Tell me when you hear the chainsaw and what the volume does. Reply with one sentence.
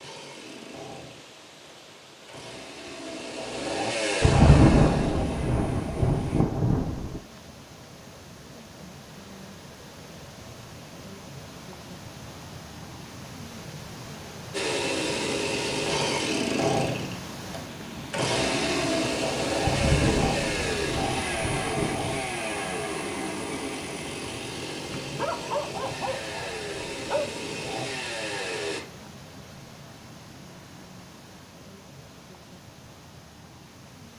You can hear the chainsaw from 0.0 to 6.5 s, getting louder then quieter; and from 14.5 to 28.8 s, getting quieter.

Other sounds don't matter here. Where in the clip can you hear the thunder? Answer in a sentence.
You can hear the thunder from 4.2 to 7.2 s and from 19.6 to 22.2 s.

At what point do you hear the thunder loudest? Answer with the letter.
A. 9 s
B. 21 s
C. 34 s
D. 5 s
D.